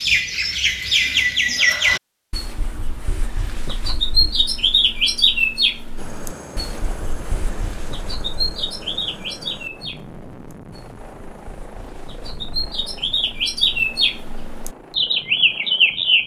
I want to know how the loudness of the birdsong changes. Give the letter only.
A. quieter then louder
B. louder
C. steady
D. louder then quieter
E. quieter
A.